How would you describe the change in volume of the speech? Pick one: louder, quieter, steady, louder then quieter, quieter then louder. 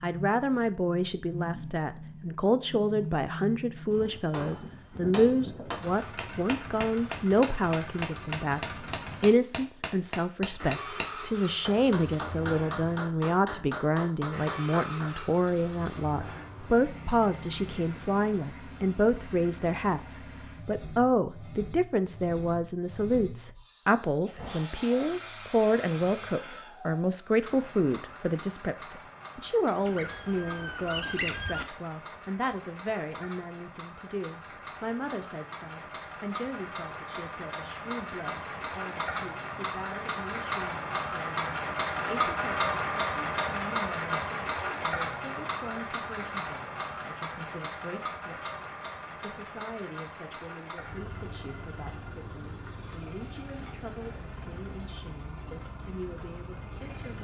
quieter.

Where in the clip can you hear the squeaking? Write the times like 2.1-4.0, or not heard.
29.8-31.6.